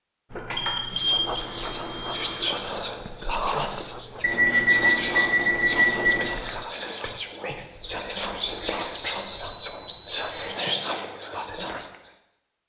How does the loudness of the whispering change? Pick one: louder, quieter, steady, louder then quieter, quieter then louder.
steady.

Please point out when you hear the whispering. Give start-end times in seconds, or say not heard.
0.9-12.2.